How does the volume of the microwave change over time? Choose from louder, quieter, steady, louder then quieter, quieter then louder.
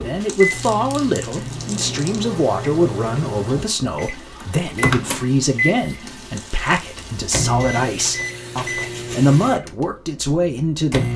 louder then quieter.